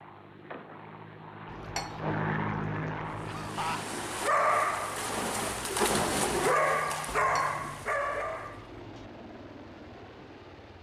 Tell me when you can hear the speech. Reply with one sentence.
You can't hear the speech here.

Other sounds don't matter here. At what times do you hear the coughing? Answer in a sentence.
You can hear the coughing from 3.2 to 3.9 s.